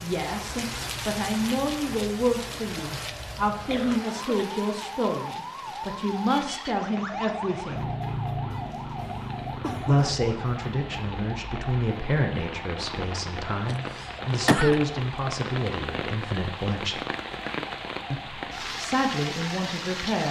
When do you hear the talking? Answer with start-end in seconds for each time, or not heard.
0.0-7.9, 9.8-17.0, 18.1-20.2.